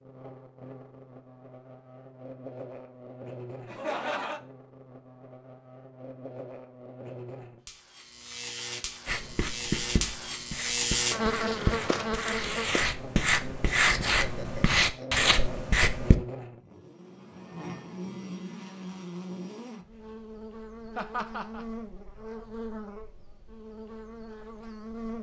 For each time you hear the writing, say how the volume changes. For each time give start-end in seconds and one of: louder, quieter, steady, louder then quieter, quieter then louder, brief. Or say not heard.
9.1-16.1 louder.